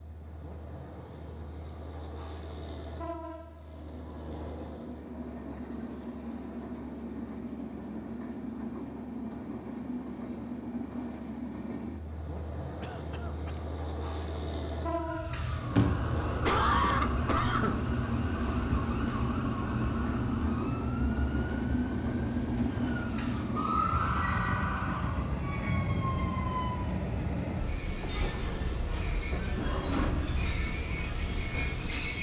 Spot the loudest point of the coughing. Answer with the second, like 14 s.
17 s.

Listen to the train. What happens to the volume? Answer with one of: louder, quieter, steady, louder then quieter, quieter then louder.
louder.